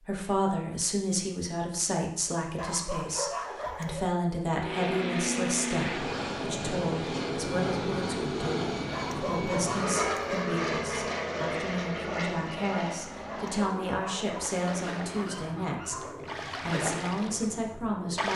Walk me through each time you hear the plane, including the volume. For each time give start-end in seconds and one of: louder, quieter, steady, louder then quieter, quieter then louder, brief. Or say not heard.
4.5-18.3 quieter.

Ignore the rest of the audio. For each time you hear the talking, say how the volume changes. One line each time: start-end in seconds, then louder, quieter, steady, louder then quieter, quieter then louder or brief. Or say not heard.
0.1-18.3 steady.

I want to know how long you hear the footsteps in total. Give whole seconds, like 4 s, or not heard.
not heard.